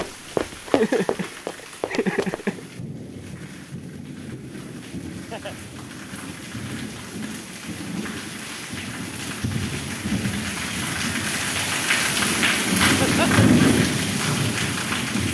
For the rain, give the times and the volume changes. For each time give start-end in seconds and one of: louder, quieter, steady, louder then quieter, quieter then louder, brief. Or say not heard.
0.0-15.2 louder.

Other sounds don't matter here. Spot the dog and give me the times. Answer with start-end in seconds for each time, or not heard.
not heard.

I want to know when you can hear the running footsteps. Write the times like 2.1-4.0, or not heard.
0.0-2.4.